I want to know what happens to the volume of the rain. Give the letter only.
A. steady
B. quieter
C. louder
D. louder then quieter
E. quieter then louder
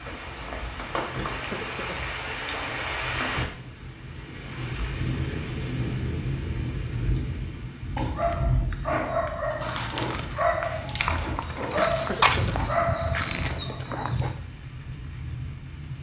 B.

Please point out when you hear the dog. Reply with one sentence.
You can hear the dog from 8.0 to 14.3 s.